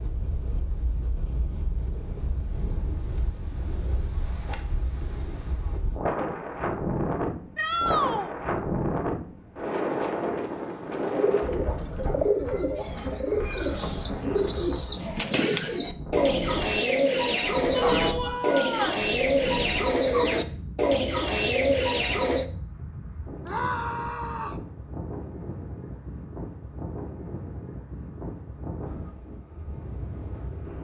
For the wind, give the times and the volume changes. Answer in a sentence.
The wind can be heard from 0.0 to 30.8 s, getting louder then quieter.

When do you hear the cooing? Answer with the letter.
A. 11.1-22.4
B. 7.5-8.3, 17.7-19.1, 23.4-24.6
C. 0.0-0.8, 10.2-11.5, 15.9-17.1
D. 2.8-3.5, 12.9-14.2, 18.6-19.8
A.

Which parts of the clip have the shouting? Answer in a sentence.
You can hear the shouting from 7.5 to 8.3 s, from 17.7 to 19.1 s and from 23.4 to 24.6 s.